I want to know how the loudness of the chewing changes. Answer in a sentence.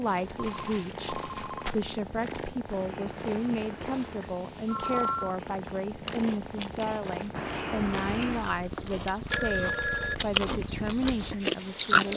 The loudness of the chewing goes down, then up.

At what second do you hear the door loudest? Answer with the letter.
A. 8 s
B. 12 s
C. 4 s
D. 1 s
A.